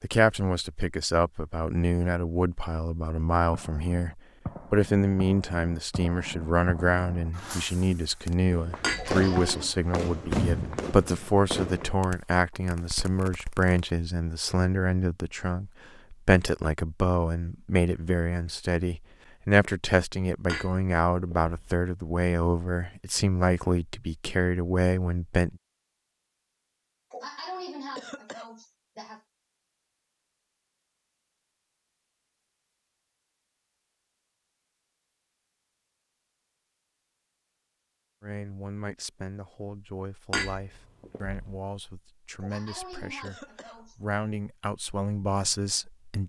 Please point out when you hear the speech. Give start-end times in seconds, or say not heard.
0.0-25.6, 38.2-46.2.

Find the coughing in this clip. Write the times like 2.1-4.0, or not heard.
8.9-9.8, 27.1-29.2, 42.4-44.0.